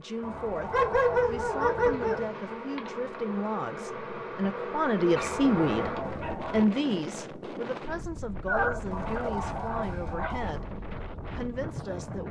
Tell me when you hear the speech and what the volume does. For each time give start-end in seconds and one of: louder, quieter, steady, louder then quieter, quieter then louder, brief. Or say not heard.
0.0-12.2 louder then quieter.